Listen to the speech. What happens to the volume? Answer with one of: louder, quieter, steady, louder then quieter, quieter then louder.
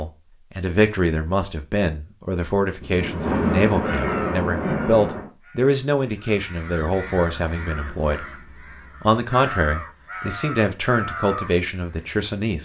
steady.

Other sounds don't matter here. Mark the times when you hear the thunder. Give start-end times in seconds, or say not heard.
2.8-5.3.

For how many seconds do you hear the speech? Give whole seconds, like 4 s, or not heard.
12 s.